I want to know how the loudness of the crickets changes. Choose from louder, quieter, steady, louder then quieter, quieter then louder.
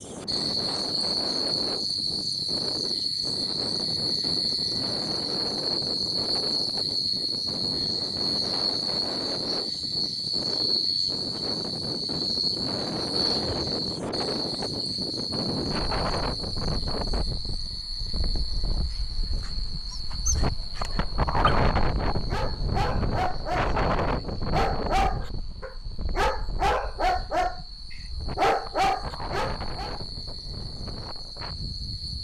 quieter.